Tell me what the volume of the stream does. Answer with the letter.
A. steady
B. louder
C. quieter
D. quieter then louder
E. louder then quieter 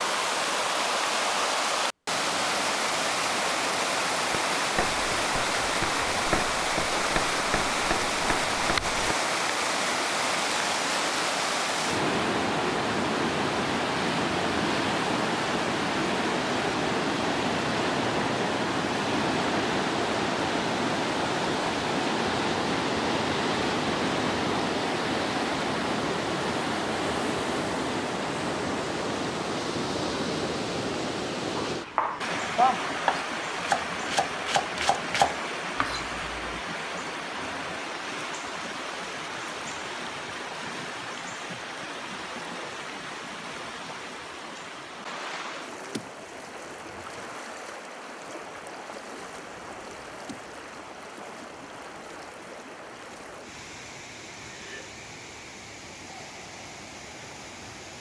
C.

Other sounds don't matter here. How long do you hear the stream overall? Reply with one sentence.
The stream can be heard for 58 seconds in total.